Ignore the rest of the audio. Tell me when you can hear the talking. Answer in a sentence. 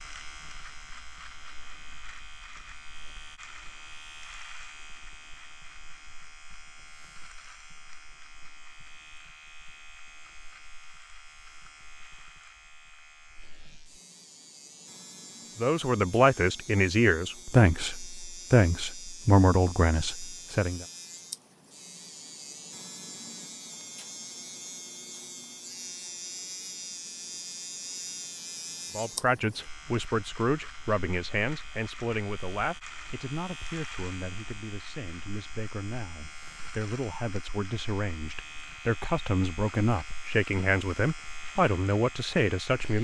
You can hear the talking from 15.6 to 20.9 s and from 28.9 to 42.9 s.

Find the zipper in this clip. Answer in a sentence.
You can't hear the zipper here.